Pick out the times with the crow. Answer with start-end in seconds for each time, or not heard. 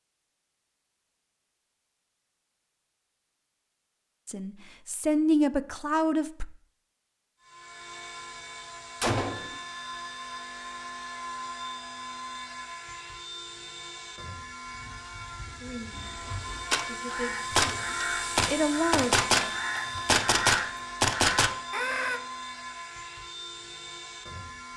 15.9-22.2.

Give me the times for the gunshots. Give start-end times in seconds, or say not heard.
9.0-9.6, 16.7-21.5.